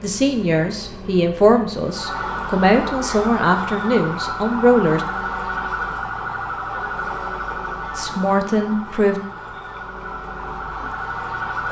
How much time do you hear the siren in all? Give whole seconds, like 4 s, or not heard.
10 s.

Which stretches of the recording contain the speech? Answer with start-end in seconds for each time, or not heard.
0.0-5.0, 8.0-9.2.